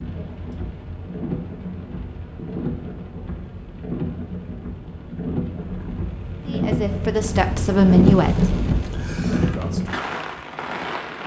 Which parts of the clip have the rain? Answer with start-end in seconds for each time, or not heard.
0.0-11.2.